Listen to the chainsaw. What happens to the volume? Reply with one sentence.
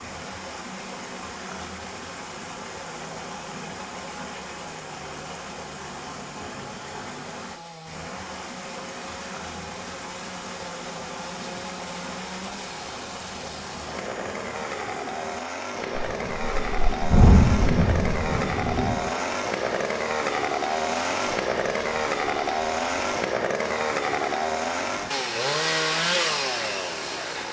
The volume of the chainsaw goes up.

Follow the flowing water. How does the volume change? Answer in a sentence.
The loudness of the flowing water stays about the same.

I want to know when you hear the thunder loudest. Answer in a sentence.
The volume of the thunder peaks at 17 seconds.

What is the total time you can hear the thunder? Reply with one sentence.
You can hear the thunder for 3 seconds altogether.